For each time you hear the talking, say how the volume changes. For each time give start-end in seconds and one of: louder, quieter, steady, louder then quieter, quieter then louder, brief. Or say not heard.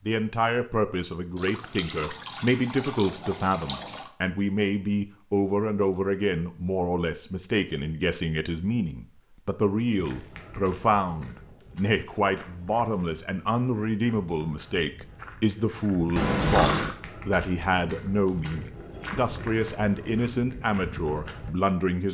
0.1-22.0 steady.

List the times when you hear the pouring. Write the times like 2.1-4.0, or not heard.
1.4-4.1, 16.1-16.9.